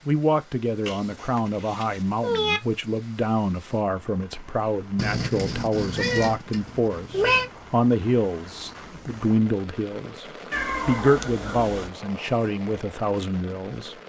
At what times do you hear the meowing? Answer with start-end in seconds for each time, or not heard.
0.8-2.6, 5.0-7.5, 10.5-11.9.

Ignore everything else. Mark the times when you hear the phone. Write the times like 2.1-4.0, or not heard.
not heard.